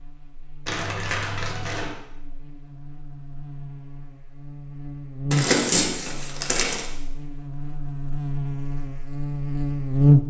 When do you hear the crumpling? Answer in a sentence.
The crumpling can be heard from 0.7 to 1.9 s and from 5.3 to 6.8 s.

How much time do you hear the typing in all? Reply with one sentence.
You can't hear the typing here.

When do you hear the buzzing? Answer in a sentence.
The buzzing can be heard from 0.0 to 10.2 s.